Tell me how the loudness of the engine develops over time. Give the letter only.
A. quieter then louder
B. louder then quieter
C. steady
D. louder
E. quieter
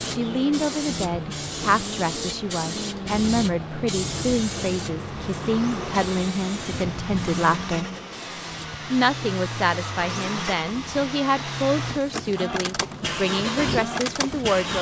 D.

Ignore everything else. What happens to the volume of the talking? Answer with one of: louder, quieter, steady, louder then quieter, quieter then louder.
steady.